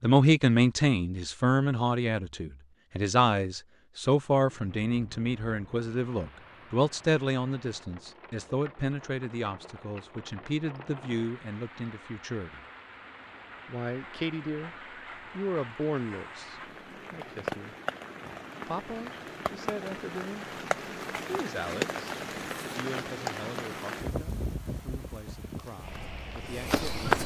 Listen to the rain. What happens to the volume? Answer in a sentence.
The loudness of the rain goes up.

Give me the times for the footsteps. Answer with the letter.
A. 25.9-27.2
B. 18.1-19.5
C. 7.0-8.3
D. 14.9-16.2
A.